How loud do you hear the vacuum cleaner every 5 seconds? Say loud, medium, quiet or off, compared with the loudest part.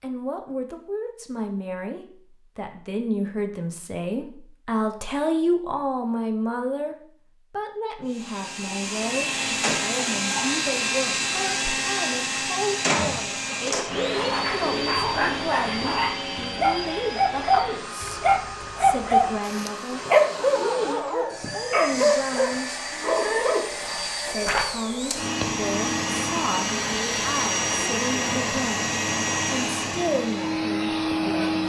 off, loud, loud, medium, medium, loud, loud.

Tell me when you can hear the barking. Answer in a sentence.
You can hear the barking from 13.3 to 23.8 s.